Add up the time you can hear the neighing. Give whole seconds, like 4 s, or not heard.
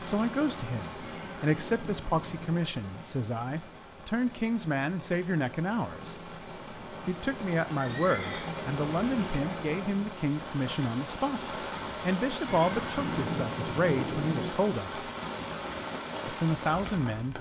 4 s.